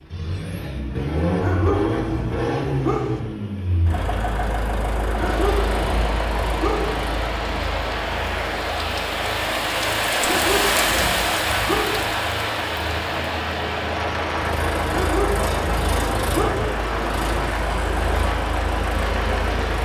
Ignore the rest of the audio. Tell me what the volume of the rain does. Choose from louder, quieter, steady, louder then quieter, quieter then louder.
louder then quieter.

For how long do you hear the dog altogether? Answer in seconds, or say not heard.
7 s.